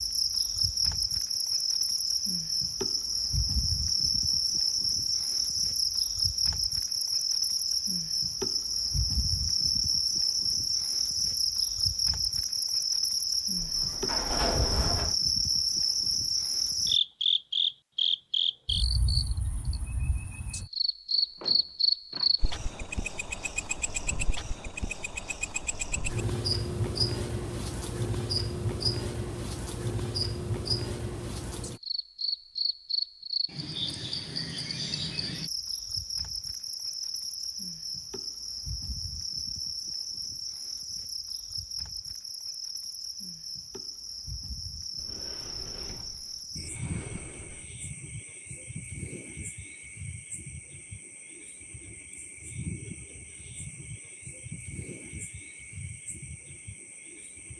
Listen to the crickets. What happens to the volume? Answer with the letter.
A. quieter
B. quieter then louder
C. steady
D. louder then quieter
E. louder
A.